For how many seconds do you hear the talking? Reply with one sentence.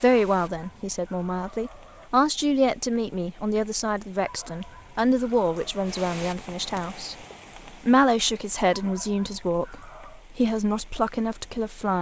The talking can be heard for 11 seconds in total.